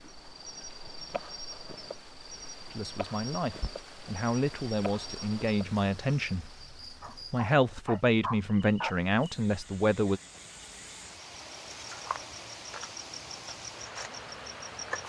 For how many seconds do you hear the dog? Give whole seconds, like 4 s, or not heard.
2 s.